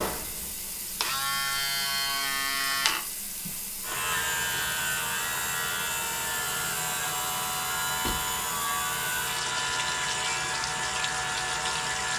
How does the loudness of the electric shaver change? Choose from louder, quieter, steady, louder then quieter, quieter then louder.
steady.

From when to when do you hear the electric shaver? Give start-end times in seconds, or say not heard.
0.0-12.1.